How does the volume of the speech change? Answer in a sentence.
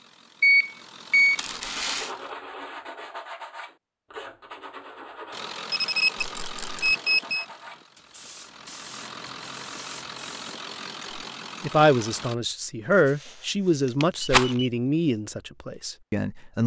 The volume of the speech goes up, then down.